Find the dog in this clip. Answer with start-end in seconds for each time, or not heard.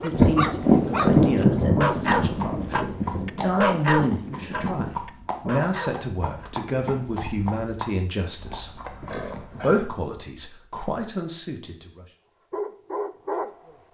0.0-6.5, 12.5-13.5.